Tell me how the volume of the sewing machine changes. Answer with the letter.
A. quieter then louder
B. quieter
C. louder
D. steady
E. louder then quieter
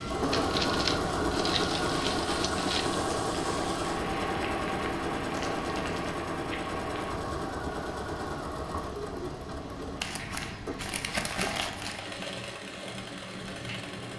B.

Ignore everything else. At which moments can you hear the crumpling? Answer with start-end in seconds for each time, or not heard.
0.3-3.0, 5.3-6.2, 10.0-12.2.